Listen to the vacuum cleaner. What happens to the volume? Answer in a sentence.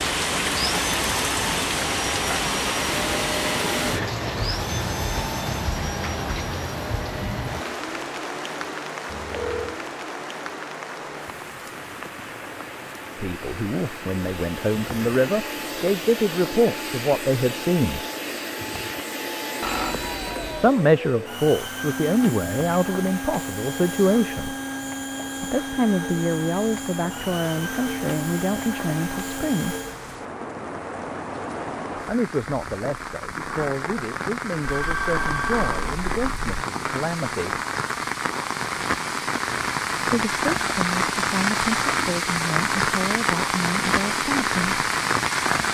The loudness of the vacuum cleaner goes down, then up.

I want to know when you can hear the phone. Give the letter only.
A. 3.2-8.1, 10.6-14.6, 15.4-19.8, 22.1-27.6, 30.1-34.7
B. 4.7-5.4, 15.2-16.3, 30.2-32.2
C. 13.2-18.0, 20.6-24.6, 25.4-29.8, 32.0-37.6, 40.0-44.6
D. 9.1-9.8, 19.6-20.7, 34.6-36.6
D.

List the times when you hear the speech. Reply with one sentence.
You can hear the speech from 13.2 to 18.0 s, from 20.6 to 24.6 s, from 25.4 to 29.8 s, from 32.0 to 37.6 s and from 40.0 to 44.6 s.